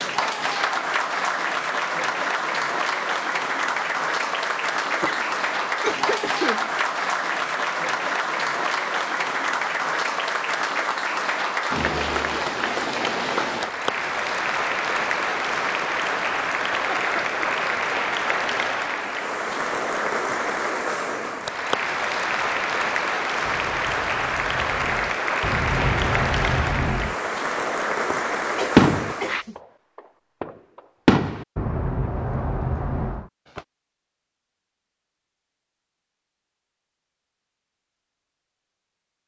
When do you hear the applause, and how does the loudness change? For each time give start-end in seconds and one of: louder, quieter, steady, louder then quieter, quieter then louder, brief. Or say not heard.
0.0-29.4 steady.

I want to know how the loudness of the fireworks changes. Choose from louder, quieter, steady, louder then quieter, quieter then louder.
louder then quieter.